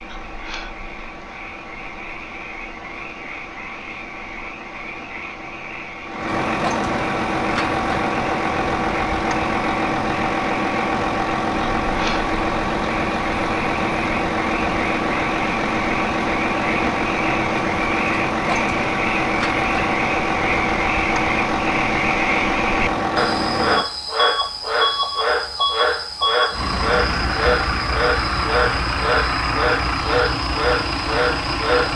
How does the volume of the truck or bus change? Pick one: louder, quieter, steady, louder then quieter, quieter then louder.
louder.